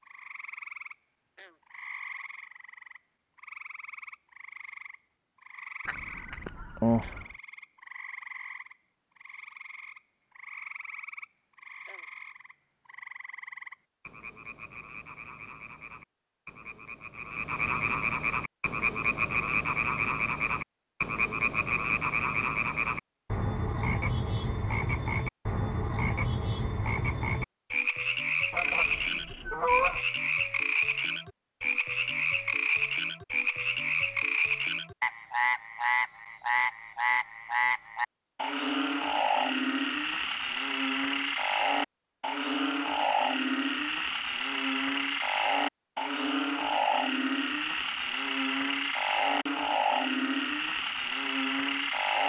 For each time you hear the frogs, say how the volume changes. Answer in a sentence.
You can hear the frogs from 0.0 to 52.2 s, getting louder.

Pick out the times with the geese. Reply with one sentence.
You can hear the geese from 5.8 to 7.2 s and from 28.5 to 30.1 s.